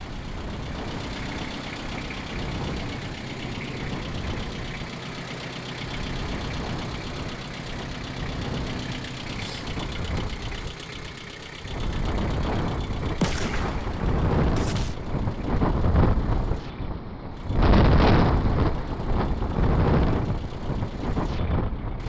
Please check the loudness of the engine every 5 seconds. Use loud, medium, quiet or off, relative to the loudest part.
loud, loud, medium, quiet, medium.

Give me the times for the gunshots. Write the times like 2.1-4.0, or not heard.
13.2-14.9.